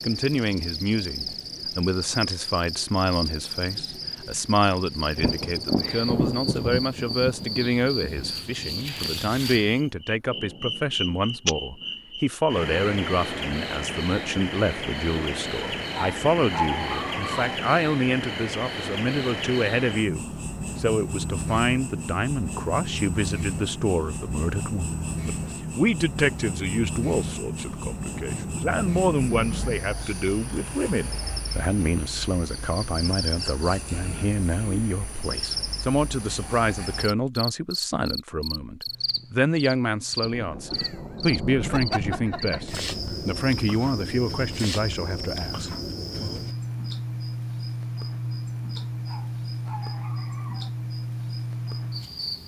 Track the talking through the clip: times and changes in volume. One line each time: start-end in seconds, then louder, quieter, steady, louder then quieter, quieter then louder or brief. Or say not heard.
0.0-46.4 steady.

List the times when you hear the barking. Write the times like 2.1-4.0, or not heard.
15.8-17.6, 48.8-50.7.